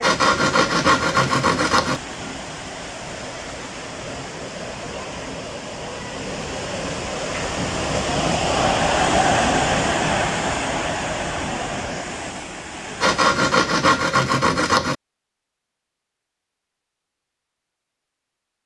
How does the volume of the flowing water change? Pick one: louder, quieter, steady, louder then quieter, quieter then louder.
louder then quieter.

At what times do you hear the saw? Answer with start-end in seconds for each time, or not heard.
0.0-2.0, 13.0-14.9.